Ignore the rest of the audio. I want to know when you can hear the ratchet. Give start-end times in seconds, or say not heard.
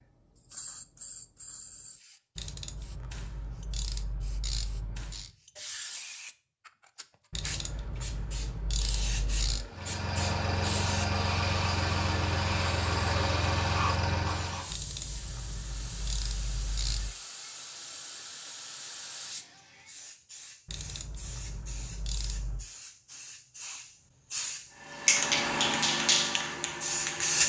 2.4-5.3, 7.3-9.7, 14.7-17.1, 20.6-22.7.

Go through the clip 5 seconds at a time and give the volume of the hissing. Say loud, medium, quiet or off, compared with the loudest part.
quiet, quiet, medium, quiet, quiet, loud.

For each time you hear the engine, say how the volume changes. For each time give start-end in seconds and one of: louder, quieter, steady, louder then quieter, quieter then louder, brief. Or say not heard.
9.7-14.7 steady
24.7-27.4 brief.